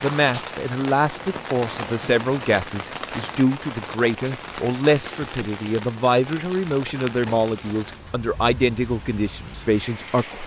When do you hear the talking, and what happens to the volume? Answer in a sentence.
The talking can be heard from 0.0 to 10.4 s, at a steady volume.